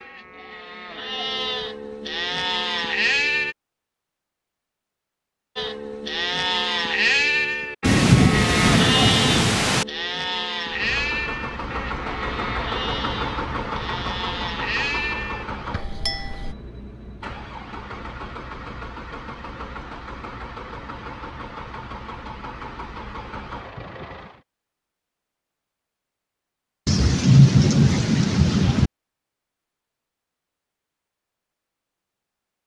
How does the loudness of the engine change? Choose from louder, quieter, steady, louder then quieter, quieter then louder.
quieter.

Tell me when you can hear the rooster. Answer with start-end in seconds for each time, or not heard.
not heard.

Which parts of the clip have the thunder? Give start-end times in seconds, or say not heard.
7.8-9.8, 26.9-28.9.